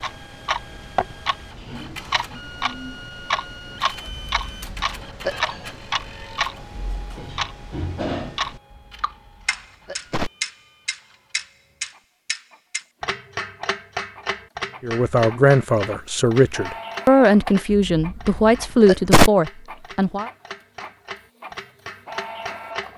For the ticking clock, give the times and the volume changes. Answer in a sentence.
The ticking clock can be heard from 0.0 to 22.9 s, getting quieter.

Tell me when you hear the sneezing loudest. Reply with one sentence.
The volume of the sneezing peaks at 19 seconds.